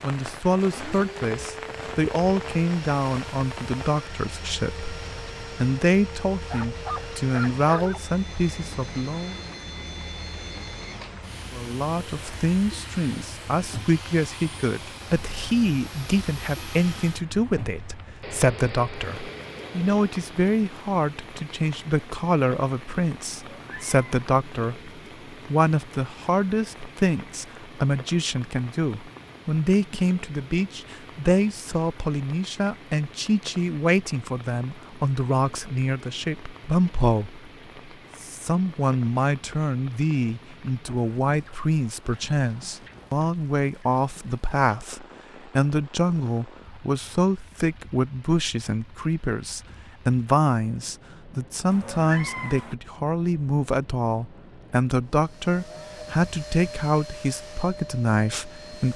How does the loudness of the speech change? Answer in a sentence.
The volume of the speech stays about the same.